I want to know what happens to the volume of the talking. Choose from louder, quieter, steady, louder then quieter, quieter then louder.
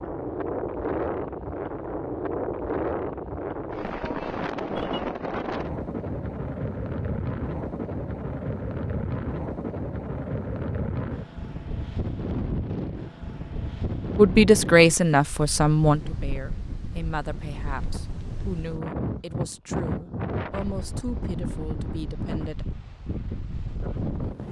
quieter.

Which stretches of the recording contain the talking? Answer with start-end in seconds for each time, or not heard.
14.2-22.6.